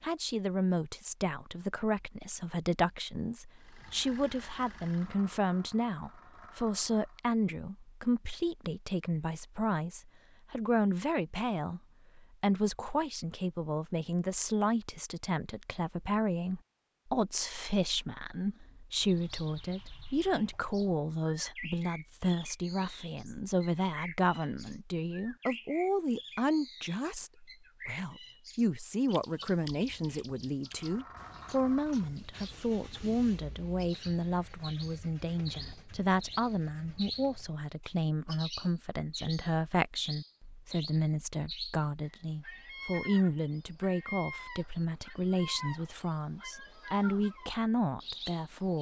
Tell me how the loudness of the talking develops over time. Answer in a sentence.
The volume of the talking stays about the same.